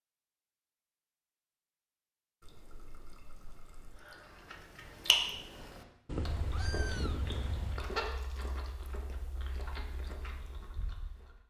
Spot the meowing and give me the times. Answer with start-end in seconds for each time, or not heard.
6.0-7.9.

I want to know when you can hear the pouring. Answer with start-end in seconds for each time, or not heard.
2.4-4.0, 8.0-8.7.